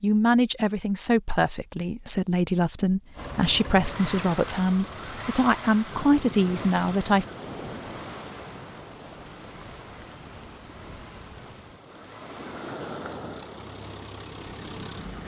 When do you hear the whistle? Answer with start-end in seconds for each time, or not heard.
not heard.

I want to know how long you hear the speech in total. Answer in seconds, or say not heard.
7 s.